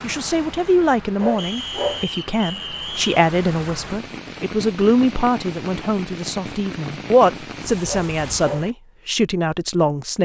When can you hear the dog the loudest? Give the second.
2 s.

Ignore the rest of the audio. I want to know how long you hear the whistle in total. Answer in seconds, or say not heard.
2 s.